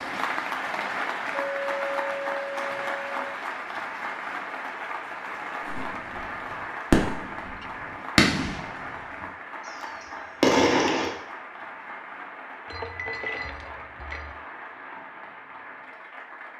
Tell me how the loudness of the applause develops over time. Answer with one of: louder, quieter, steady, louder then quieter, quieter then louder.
quieter.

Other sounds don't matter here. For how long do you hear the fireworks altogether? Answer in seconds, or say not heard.
4 s.